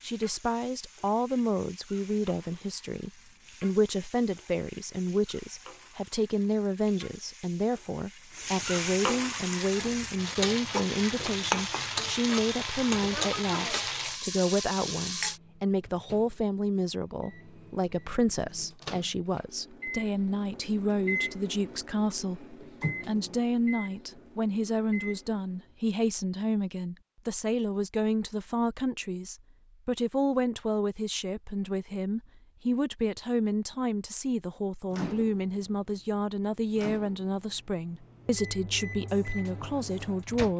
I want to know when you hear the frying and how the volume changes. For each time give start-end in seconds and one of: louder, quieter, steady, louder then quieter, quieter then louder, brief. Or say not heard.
0.0-15.4 louder.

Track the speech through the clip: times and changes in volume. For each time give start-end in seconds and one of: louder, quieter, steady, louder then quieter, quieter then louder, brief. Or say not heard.
0.0-40.5 steady.